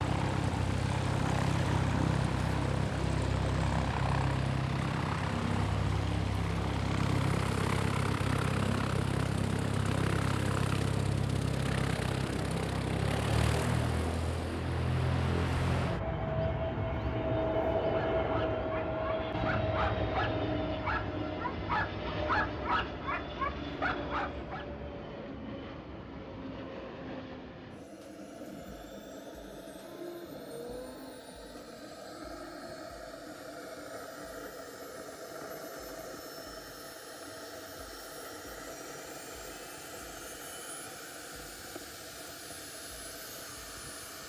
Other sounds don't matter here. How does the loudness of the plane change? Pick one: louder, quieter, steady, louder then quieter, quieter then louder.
quieter.